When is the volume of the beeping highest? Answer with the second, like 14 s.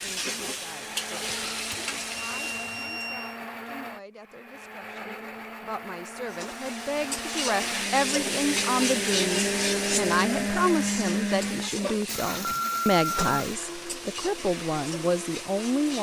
13 s.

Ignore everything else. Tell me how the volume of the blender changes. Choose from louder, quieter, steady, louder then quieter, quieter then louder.
louder then quieter.